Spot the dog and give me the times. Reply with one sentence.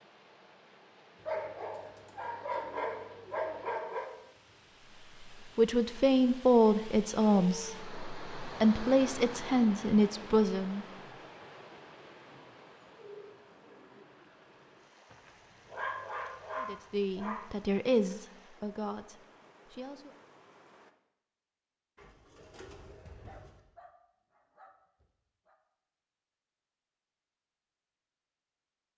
You can hear the dog from 1.2 to 4.2 s, from 15.1 to 17.5 s and from 23.1 to 25.6 s.